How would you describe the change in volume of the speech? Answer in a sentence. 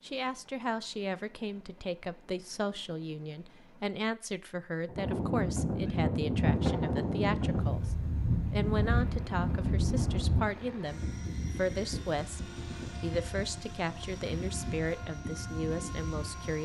The volume of the speech stays about the same.